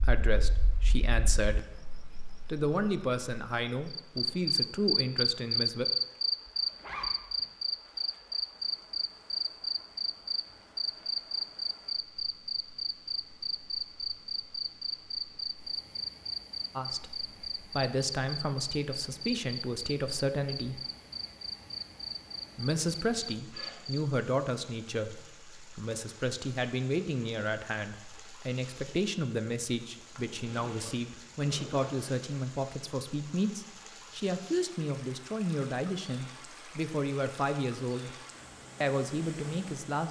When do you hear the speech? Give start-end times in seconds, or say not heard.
0.0-1.8, 2.5-5.8, 16.8-20.8, 22.6-38.1, 38.8-40.0.